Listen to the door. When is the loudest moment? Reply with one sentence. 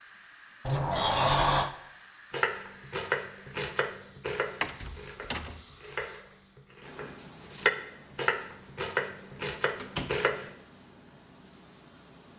The volume of the door peaks at 1 second.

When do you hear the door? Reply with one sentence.
You can hear the door from 0.7 to 1.7 s, from 4.6 to 5.6 s and from 9.8 to 10.2 s.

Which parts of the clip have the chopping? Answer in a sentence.
You can hear the chopping from 2.3 to 10.5 s.